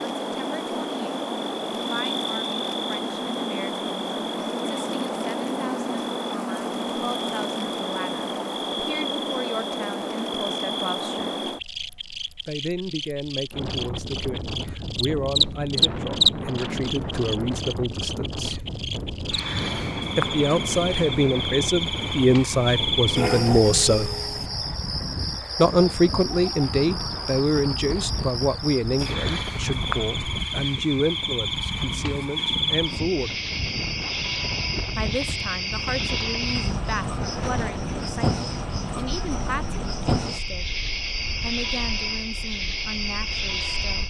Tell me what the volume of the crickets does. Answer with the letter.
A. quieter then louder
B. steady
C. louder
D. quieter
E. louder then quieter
B.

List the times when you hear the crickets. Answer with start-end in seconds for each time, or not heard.
0.0-44.0.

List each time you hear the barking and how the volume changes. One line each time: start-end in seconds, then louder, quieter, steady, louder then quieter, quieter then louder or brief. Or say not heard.
not heard.